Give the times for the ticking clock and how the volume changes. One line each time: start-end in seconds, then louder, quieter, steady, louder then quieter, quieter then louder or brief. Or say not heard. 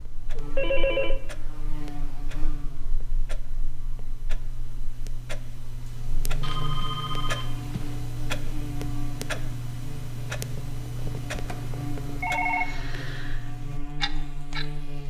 0.0-14.7 louder.